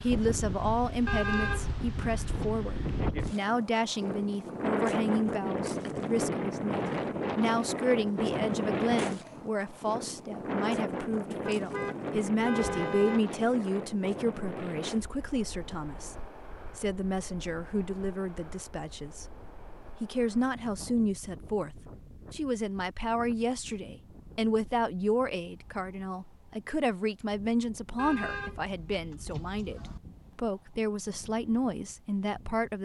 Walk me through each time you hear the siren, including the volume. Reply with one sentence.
You can't hear the siren here.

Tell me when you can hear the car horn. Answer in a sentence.
You can hear the car horn from 1.1 to 2.5 s, from 11.4 to 13.2 s and from 27.9 to 30.0 s.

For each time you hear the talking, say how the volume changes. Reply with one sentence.
You can hear the talking from 0.0 to 32.7 s, at a steady volume.